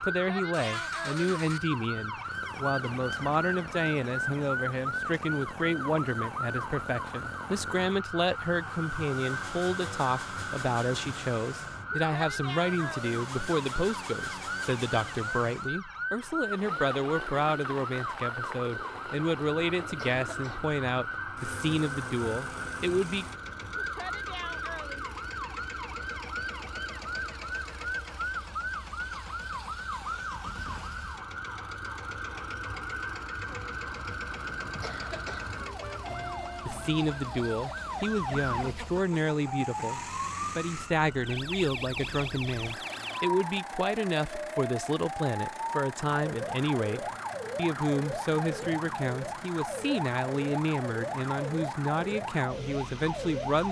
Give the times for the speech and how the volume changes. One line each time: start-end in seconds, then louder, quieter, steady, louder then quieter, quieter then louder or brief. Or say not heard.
0.0-23.2 steady
36.6-53.6 steady.